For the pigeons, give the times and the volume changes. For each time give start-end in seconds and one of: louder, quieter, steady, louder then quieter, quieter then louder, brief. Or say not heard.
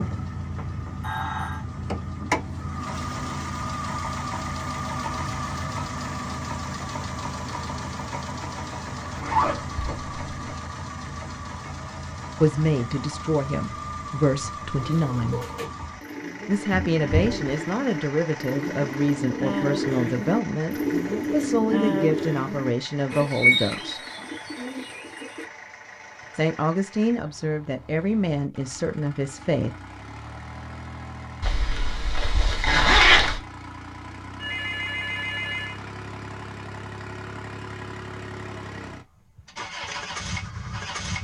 14.8-25.4 louder.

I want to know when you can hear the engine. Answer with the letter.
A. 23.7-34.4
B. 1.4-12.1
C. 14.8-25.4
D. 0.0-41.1
D.